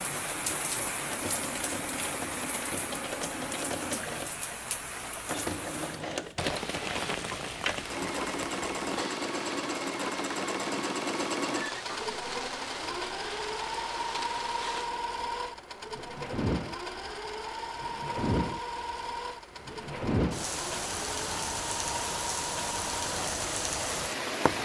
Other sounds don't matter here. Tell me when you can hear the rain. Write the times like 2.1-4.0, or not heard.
0.0-24.6.